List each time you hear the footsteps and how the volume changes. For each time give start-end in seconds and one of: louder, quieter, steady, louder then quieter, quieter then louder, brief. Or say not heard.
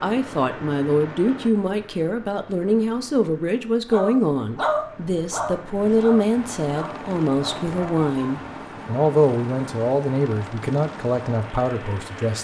not heard.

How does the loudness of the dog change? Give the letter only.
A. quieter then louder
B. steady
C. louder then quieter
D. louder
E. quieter
E.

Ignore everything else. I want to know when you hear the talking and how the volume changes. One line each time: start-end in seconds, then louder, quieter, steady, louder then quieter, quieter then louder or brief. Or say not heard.
0.0-12.3 steady.